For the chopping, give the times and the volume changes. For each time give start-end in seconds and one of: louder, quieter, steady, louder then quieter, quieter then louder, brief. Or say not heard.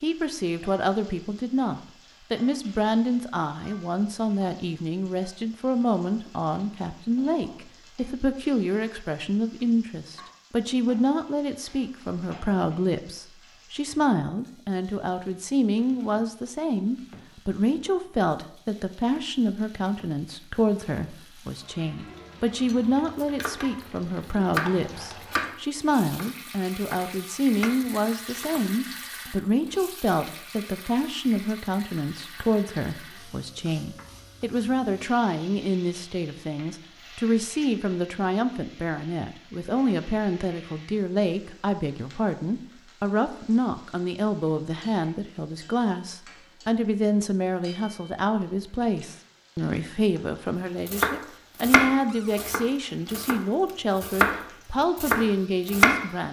23.1-23.6 brief
24.5-28.6 quieter then louder
50.9-53.4 brief
54.0-56.0 brief.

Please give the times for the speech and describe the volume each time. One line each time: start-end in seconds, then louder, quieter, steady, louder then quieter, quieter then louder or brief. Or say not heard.
0.0-56.2 steady.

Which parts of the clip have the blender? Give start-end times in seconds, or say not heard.
not heard.